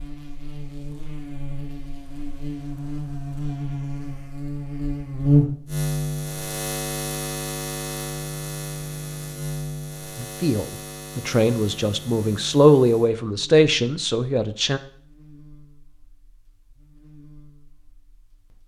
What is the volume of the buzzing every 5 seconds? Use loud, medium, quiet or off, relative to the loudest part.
medium, loud, quiet, quiet.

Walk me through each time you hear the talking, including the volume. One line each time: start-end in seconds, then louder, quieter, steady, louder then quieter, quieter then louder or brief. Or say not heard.
10.2-14.8 louder then quieter.